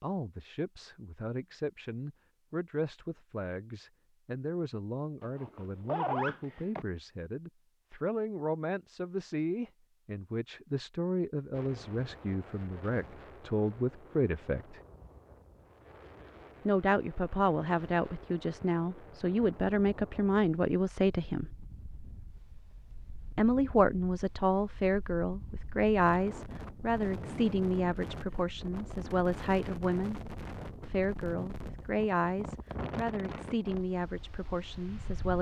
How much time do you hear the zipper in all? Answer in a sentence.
You can hear the zipper for 2 seconds altogether.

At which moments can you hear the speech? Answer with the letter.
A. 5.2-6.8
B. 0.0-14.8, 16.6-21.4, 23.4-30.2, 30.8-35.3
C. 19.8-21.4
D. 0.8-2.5
B.